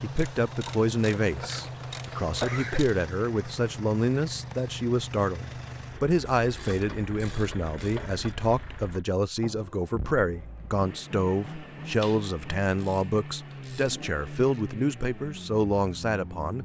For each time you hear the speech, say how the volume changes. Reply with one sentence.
The speech can be heard from 0.0 to 16.6 s, at a steady volume.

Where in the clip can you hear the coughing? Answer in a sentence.
The coughing can be heard from 1.2 to 2.9 s.